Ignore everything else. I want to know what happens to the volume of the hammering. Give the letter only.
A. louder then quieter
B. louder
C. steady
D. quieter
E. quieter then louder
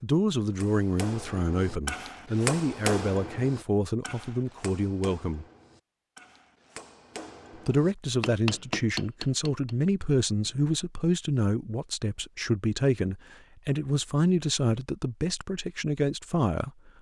E.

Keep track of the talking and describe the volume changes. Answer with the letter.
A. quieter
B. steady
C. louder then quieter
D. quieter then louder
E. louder
B.